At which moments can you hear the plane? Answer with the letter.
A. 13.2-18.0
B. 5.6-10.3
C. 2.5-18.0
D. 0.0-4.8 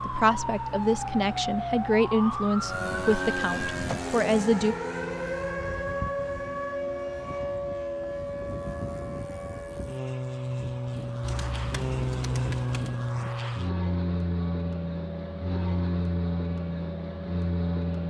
C.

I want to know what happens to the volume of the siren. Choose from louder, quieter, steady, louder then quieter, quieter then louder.
quieter.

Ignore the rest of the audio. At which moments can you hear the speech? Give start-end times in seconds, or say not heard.
0.0-4.8.